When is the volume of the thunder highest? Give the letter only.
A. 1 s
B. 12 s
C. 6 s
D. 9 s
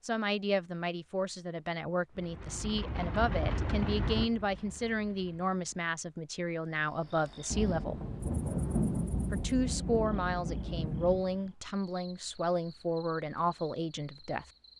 D.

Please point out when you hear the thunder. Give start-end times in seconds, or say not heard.
7.5-11.2.